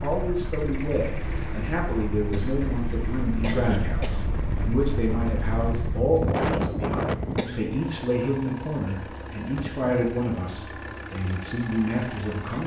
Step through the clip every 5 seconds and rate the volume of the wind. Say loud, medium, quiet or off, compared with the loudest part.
medium, loud, off.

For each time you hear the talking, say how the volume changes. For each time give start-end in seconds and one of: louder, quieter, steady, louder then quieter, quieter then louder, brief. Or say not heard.
0.0-12.6 steady.